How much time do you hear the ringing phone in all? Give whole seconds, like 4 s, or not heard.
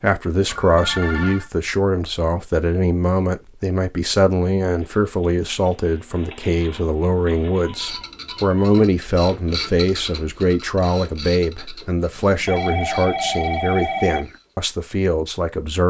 4 s.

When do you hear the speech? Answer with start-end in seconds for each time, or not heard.
0.0-15.8.